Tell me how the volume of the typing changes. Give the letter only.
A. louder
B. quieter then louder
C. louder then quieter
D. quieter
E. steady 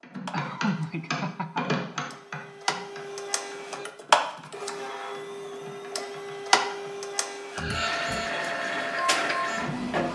D.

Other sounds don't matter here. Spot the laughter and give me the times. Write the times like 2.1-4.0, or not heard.
0.3-1.9, 7.5-8.3.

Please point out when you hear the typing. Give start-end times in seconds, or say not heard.
0.0-7.0.